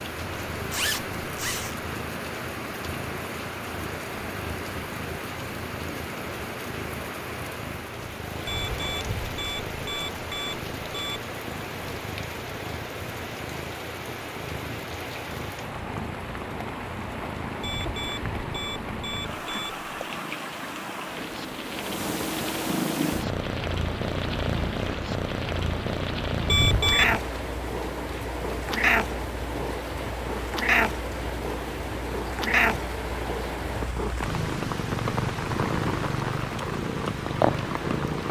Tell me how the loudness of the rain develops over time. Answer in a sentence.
The volume of the rain stays about the same.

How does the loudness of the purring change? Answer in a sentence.
The loudness of the purring goes up.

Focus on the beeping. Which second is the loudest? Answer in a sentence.
The volume of the beeping peaks at 27 seconds.